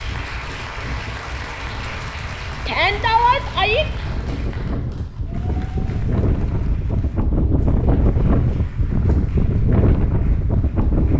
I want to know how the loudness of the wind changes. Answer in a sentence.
The volume of the wind goes up.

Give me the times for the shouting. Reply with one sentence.
You can hear the shouting from 2.6 to 3.9 s.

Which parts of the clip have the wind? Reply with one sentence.
The wind can be heard from 0.0 to 11.1 s.